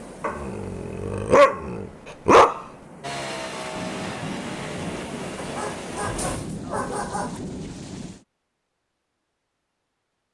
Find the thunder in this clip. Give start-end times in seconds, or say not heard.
3.8-8.2.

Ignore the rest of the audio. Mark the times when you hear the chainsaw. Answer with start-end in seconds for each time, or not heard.
3.0-6.4.